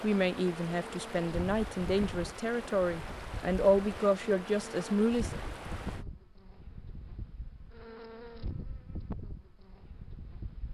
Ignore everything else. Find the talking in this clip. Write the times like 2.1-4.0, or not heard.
0.0-5.4.